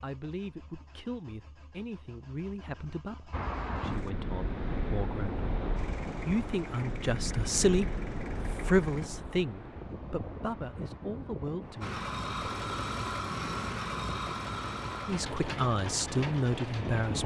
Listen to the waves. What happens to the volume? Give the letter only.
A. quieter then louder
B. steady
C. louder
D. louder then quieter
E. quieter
E.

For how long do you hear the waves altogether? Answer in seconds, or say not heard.
14 s.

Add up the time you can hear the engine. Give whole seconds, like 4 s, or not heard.
13 s.